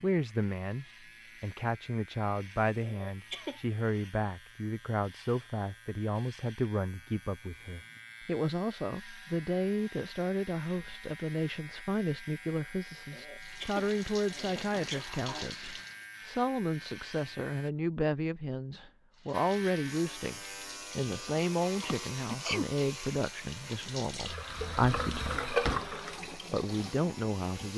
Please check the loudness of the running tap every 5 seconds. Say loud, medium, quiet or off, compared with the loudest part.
off, off, medium, medium, medium, loud.